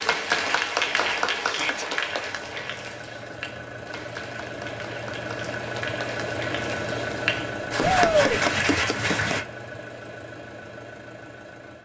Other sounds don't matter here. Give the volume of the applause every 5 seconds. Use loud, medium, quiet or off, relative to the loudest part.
loud, loud, off.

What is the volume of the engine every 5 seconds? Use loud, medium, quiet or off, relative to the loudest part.
medium, loud, medium.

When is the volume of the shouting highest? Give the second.
8 s.